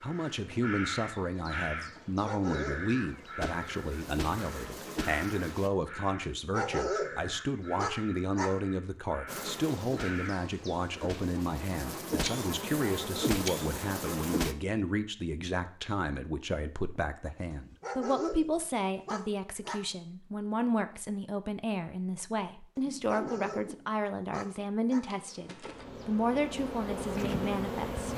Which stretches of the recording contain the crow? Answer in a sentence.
You can hear the crow from 0.0 to 11.0 s.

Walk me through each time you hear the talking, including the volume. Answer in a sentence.
The talking can be heard from 0.0 to 28.1 s, at a steady volume.